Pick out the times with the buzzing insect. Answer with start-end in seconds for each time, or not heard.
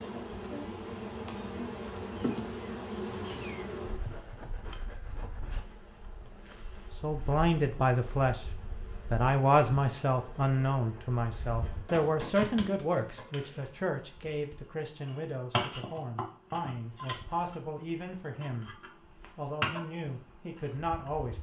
0.0-21.3.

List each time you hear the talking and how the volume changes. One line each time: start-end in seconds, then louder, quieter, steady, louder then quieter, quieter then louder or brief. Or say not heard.
6.9-8.5 brief
9.1-21.3 quieter.